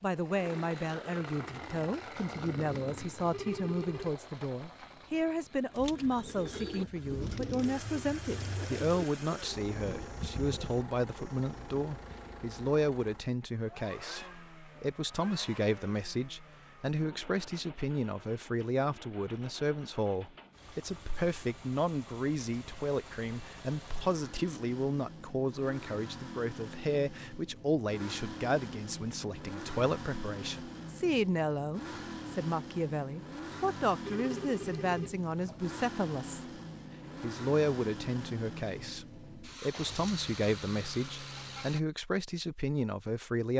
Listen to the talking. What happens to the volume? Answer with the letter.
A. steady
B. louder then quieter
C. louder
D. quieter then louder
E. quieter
A.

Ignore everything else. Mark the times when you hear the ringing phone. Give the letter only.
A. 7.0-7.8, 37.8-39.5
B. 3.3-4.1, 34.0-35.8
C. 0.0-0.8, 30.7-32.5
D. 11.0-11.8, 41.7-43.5
B.